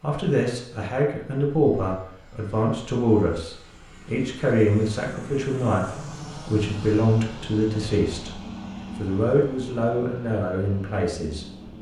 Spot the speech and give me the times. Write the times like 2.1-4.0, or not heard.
0.0-11.4.